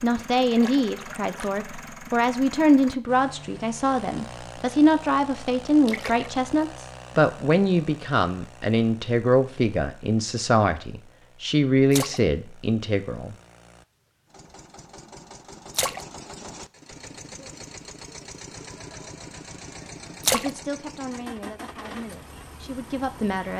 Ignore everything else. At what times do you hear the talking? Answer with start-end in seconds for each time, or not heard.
0.0-13.3, 20.3-23.5.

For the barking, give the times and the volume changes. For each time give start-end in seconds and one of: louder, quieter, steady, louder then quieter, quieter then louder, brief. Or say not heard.
not heard.